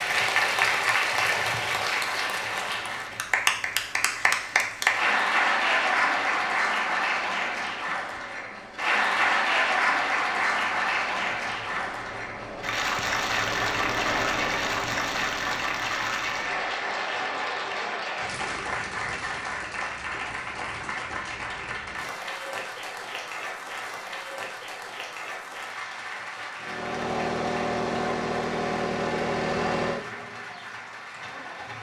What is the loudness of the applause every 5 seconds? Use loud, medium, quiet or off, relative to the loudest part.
loud, loud, loud, medium, medium, quiet, quiet.